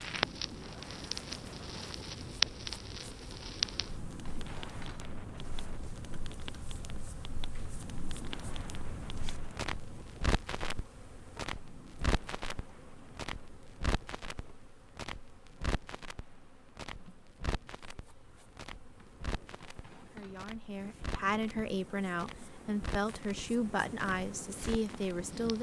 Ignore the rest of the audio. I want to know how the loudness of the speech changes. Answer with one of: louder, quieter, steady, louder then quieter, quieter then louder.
steady.